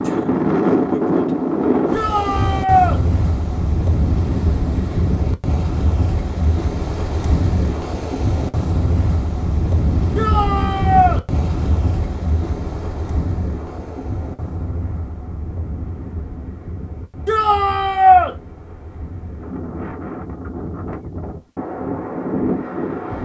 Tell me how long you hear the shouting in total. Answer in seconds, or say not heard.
3 s.